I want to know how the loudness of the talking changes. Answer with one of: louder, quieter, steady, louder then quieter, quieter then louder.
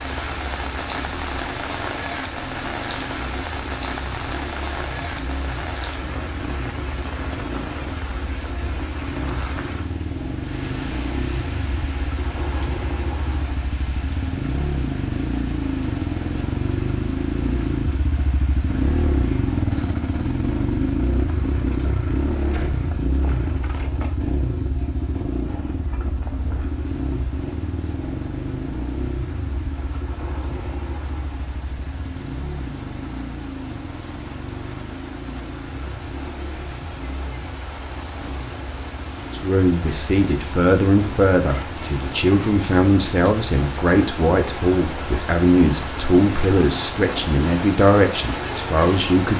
steady.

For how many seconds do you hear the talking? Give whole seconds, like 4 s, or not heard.
10 s.